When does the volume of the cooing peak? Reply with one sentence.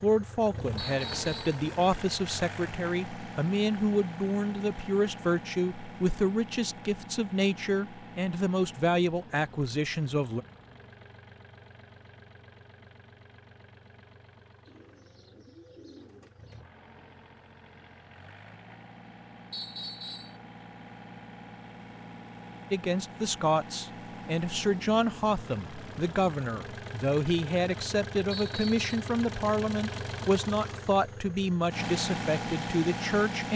The loudest moment of the cooing is at 16 seconds.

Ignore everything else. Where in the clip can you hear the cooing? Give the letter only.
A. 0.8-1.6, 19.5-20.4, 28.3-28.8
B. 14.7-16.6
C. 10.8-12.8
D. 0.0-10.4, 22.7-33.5
B.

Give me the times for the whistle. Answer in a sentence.
The whistle can be heard from 0.8 to 1.6 s, from 19.5 to 20.4 s and from 28.3 to 28.8 s.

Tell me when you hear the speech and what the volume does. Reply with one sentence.
You can hear the speech from 0.0 to 10.4 s, at a steady volume; and from 22.7 to 33.5 s, at a steady volume.